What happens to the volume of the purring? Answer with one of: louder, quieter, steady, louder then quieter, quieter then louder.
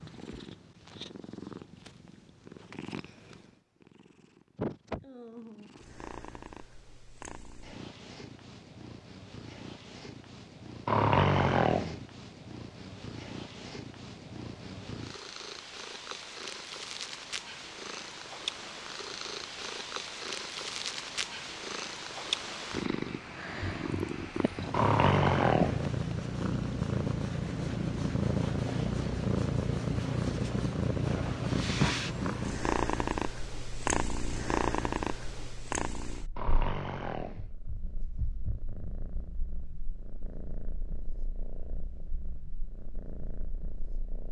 louder then quieter.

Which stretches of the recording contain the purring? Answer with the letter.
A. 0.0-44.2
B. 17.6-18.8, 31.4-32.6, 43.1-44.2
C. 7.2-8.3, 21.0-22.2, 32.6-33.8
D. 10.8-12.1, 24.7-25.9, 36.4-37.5
A.